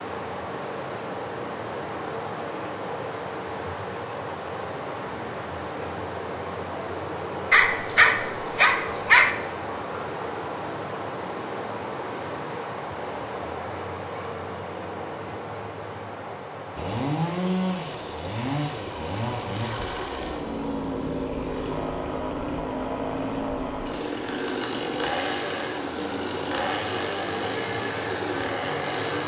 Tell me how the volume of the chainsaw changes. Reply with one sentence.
The loudness of the chainsaw stays about the same.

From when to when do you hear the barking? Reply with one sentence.
The barking can be heard from 7.5 to 9.3 s.